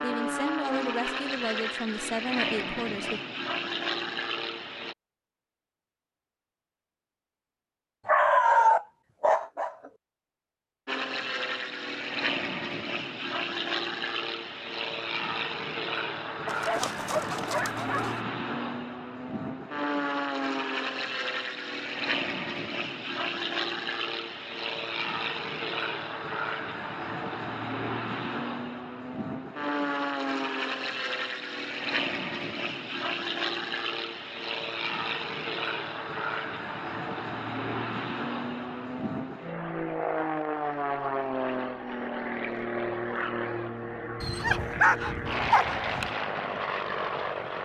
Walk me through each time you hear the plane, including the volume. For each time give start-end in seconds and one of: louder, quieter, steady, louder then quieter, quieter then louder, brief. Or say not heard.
0.0-5.0 steady
10.8-47.6 steady.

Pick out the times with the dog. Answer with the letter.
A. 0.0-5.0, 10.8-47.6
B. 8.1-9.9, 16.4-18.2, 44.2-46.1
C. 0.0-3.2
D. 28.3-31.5
B.